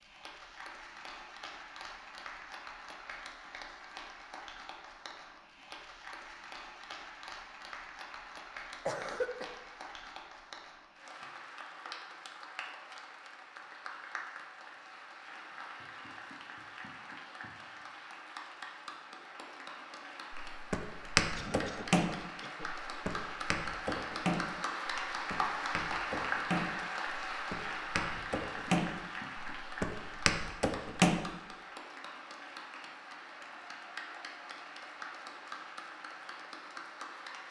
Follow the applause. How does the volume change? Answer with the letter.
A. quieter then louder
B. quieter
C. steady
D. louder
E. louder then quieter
E.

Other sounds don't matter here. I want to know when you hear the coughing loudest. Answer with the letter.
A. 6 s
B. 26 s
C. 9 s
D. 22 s
C.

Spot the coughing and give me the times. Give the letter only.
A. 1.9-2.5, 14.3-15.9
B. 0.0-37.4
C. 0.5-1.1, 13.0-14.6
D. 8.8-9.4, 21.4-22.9
D.